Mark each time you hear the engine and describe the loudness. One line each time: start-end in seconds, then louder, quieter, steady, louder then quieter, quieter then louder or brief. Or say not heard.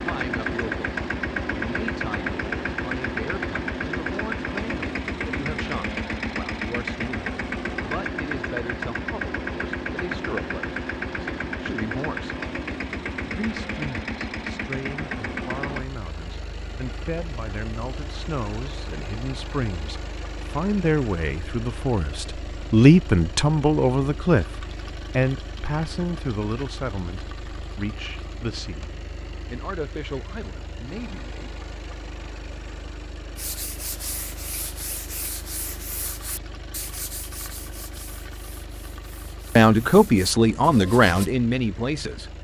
0.0-42.3 quieter.